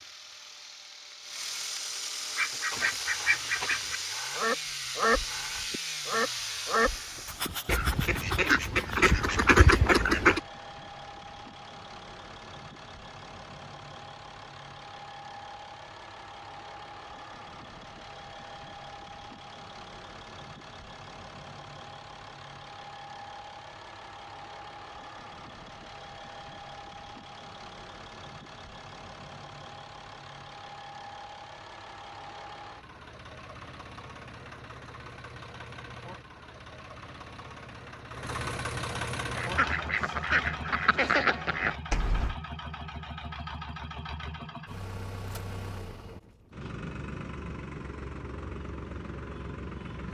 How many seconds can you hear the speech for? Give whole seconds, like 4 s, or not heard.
not heard.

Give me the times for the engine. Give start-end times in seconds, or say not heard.
0.0-50.1.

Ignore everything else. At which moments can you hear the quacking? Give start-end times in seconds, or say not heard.
2.3-10.4, 39.2-42.4.